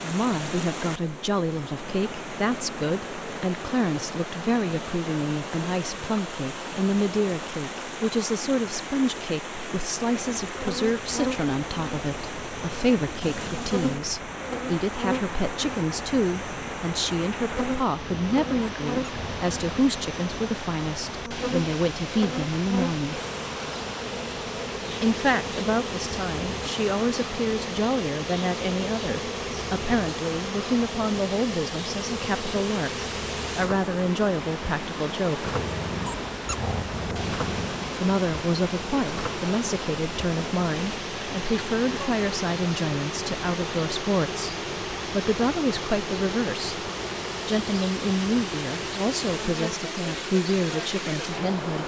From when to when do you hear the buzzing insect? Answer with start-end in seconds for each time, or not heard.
10.4-51.8.